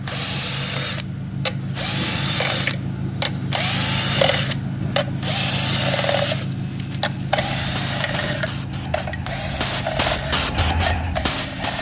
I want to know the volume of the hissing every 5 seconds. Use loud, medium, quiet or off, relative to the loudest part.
off, medium, loud.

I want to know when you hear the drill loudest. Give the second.
4 s.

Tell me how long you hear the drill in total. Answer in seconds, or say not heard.
12 s.